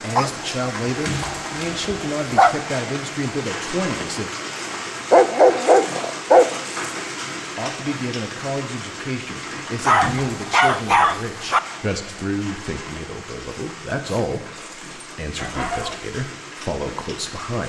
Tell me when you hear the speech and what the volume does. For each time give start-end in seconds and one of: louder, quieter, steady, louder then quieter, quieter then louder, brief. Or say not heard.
0.0-4.3 steady
7.4-17.6 steady.